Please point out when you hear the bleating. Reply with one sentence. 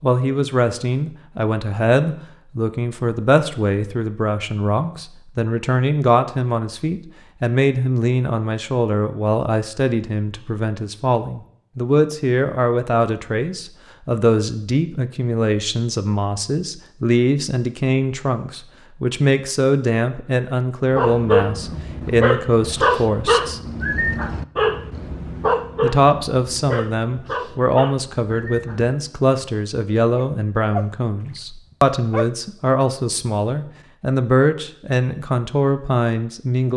You can't hear the bleating here.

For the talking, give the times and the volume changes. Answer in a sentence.
The talking can be heard from 0.0 to 23.6 s, at a steady volume; and from 25.8 to 36.7 s, at a steady volume.